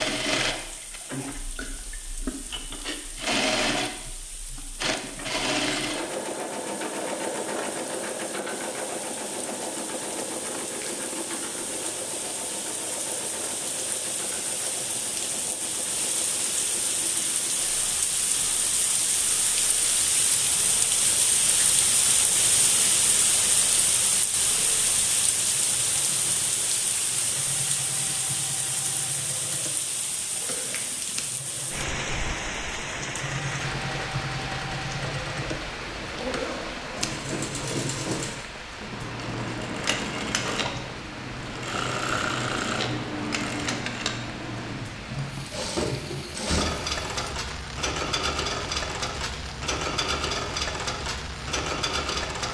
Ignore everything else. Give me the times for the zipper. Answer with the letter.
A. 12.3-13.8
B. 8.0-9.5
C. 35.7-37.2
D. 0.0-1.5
C.